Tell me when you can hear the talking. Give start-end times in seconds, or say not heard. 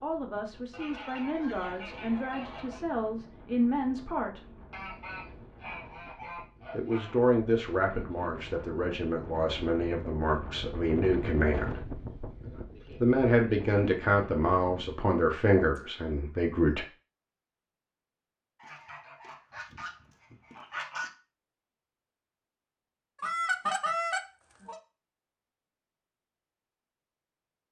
0.0-4.4, 6.7-11.8, 13.0-16.9.